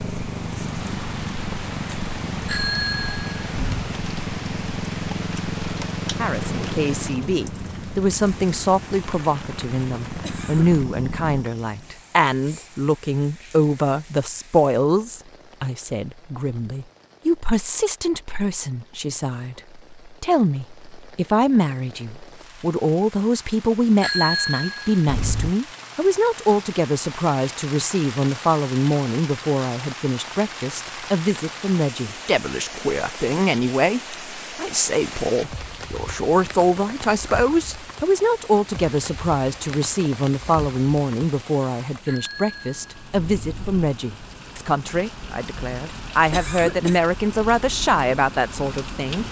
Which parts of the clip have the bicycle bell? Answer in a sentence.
You can hear the bicycle bell from 2.5 to 3.9 s, from 24.0 to 25.6 s and from 42.0 to 43.8 s.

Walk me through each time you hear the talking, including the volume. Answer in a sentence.
You can hear the talking from 6.2 to 49.2 s, at a steady volume.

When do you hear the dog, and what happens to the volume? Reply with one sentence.
The dog can't be heard in this clip.